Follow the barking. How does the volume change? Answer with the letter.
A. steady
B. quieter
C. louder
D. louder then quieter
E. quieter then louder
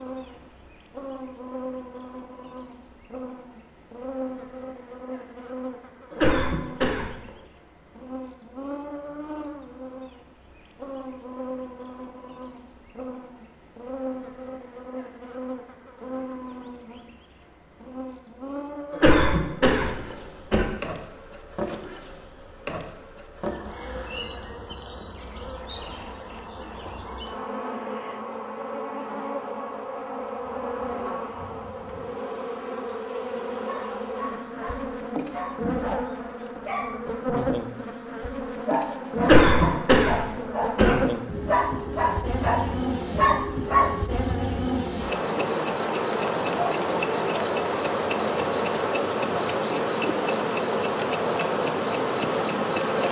C.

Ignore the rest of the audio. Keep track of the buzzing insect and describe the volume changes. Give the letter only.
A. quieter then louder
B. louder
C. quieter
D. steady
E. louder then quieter
B.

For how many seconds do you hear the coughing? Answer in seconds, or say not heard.
5 s.